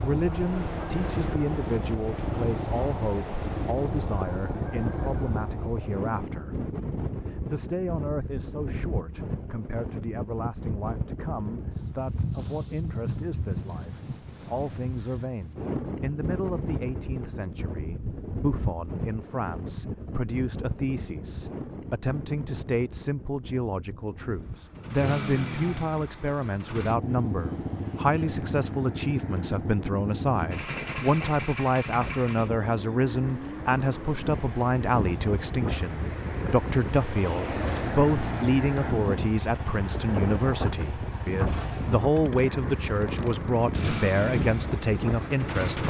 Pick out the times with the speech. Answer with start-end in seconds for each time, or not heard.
0.0-45.8.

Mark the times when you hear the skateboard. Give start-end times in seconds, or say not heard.
not heard.